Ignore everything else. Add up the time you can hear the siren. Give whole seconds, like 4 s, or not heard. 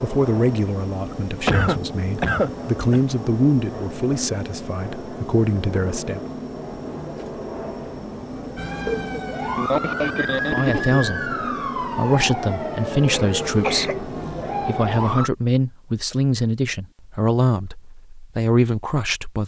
7 s.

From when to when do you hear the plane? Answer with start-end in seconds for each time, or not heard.
0.0-15.2.